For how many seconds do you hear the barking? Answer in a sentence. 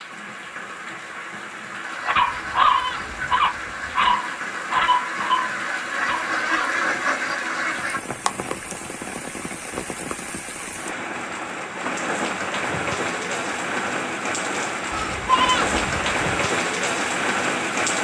You can hear the barking for 5 seconds altogether.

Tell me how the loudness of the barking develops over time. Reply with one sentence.
The loudness of the barking goes down.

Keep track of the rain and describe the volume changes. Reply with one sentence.
The volume of the rain goes up.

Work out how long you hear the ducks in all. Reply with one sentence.
You can hear the ducks for 6 seconds altogether.